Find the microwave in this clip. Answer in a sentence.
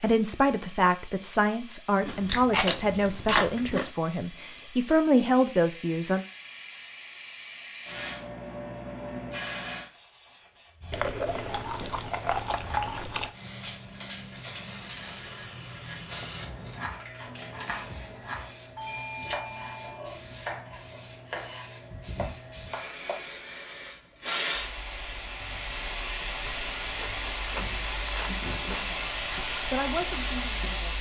You can't hear the microwave here.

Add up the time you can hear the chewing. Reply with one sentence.
The chewing can be heard for 7 seconds in total.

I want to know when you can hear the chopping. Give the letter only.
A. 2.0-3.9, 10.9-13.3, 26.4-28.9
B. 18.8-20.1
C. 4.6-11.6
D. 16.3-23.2
D.